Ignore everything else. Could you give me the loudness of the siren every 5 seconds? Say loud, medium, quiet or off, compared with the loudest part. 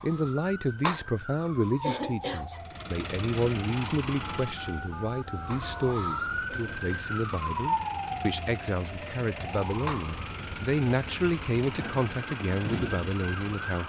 medium, loud, medium.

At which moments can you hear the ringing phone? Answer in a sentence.
The ringing phone can be heard from 4.2 to 6.0 s.